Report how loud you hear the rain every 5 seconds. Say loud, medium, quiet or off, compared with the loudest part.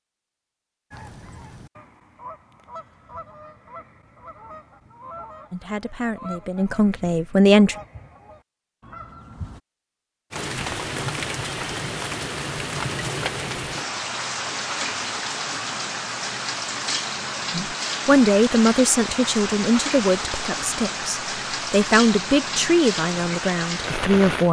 off, off, loud, loud, loud.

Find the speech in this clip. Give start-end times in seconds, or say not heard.
5.5-7.8, 17.5-24.4.